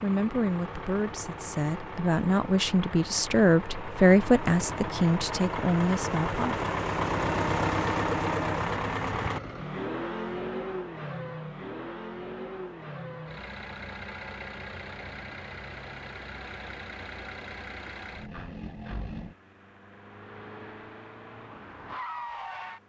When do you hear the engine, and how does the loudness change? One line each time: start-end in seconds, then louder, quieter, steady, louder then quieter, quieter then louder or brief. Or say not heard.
0.0-22.8 louder then quieter.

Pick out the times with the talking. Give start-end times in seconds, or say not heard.
0.0-6.7.